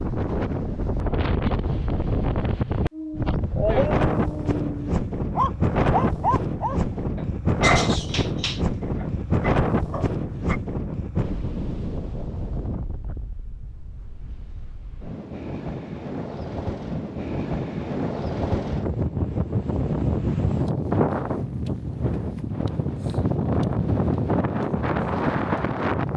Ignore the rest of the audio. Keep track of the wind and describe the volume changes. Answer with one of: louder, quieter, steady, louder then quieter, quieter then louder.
quieter then louder.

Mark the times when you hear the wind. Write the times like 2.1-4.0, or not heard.
0.0-26.1.